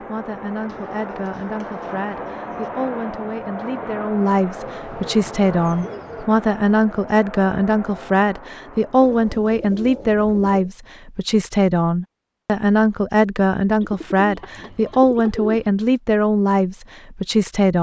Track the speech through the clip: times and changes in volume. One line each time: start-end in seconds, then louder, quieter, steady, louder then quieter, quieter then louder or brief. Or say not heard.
0.0-17.7 louder.